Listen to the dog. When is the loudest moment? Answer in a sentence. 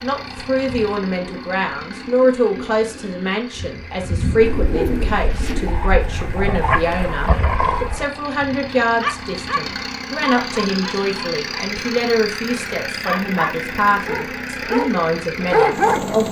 The volume of the dog peaks at 16 seconds.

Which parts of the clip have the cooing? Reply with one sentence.
The cooing can be heard from 0.7 to 5.8 s.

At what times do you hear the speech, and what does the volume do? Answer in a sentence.
The speech can be heard from 0.0 to 16.2 s, at a steady volume.